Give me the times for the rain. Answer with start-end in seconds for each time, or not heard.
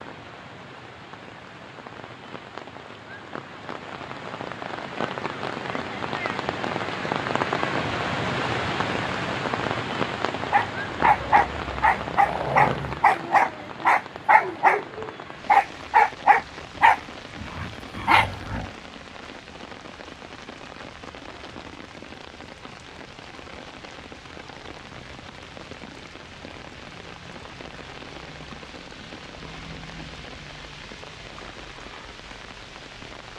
0.0-33.3.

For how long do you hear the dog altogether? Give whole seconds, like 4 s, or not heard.
8 s.